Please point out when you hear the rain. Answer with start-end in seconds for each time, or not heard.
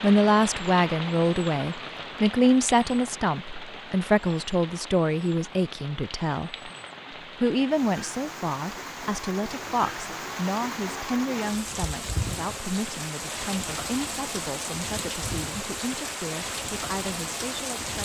0.0-18.0.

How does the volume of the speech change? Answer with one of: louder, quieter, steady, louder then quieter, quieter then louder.
quieter.